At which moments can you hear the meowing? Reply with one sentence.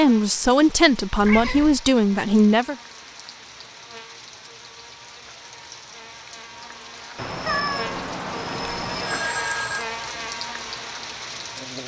You can hear the meowing from 1.1 to 1.8 s and from 7.2 to 9.3 s.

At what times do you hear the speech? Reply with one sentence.
The speech can be heard from 0.0 to 2.8 s.